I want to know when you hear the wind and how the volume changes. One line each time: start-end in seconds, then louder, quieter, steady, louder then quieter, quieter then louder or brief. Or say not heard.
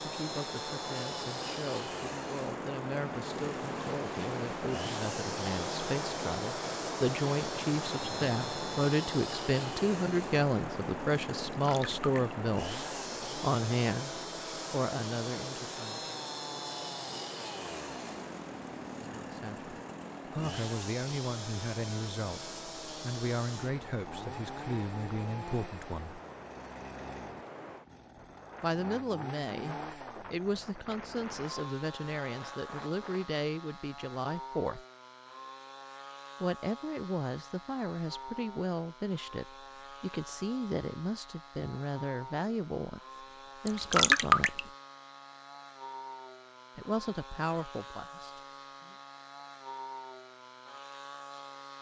0.0-33.3 quieter.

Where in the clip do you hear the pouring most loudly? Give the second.
44 s.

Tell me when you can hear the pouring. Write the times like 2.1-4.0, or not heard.
11.5-12.3, 43.6-44.6.